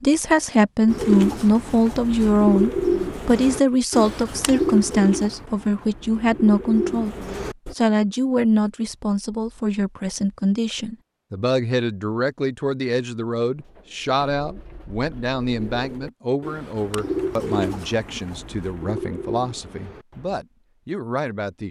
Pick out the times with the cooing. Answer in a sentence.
The cooing can be heard from 0.8 to 7.8 s and from 13.6 to 20.4 s.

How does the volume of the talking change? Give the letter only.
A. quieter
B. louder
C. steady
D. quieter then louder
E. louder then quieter
A.